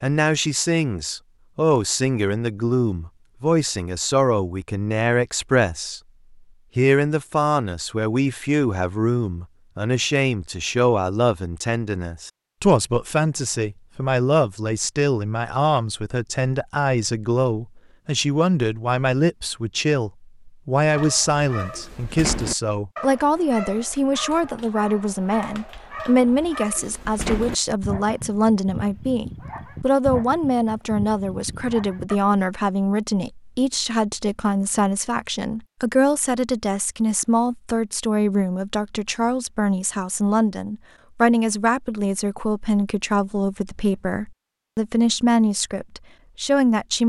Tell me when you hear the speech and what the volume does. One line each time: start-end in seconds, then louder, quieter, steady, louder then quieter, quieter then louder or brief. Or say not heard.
0.0-6.0 steady
6.8-47.0 steady.